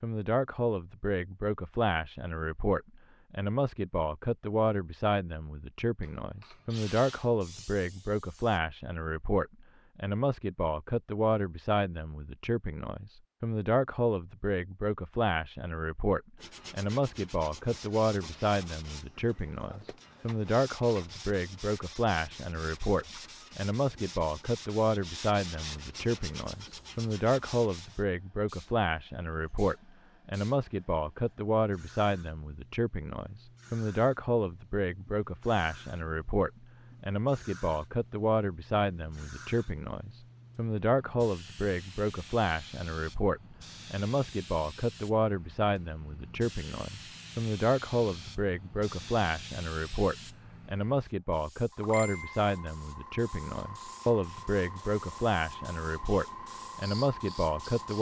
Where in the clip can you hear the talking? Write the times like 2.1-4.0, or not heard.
0.0-57.9.